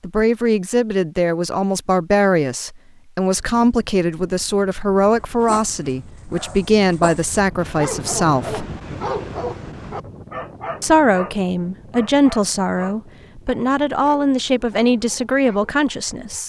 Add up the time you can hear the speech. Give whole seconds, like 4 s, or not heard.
14 s.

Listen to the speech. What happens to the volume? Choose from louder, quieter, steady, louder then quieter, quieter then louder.
steady.